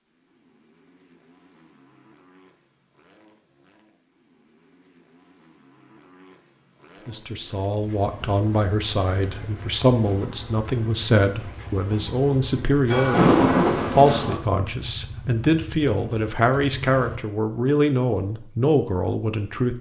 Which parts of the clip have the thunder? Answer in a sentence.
You can hear the thunder from 12.8 to 14.4 s.